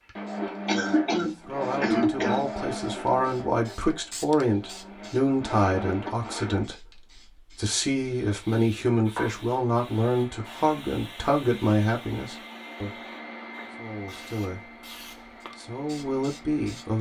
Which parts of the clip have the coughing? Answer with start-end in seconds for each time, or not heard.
0.7-2.5.